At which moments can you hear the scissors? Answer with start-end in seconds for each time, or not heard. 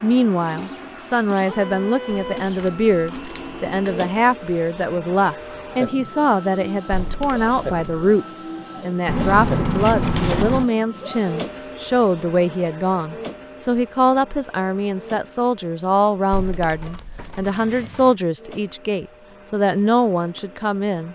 2.1-4.1, 9.1-10.7, 17.5-18.2.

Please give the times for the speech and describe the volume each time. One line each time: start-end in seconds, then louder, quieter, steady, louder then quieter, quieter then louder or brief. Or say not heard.
0.0-21.0 steady.